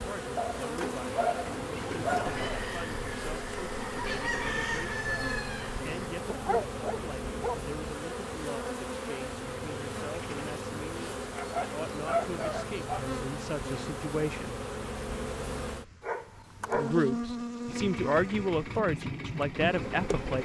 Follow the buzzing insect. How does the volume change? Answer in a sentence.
The loudness of the buzzing insect stays about the same.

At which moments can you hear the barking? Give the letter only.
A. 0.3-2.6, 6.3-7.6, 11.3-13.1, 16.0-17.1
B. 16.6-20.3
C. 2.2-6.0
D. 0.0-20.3
A.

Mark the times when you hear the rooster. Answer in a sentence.
The rooster can be heard from 2.2 to 6.0 s.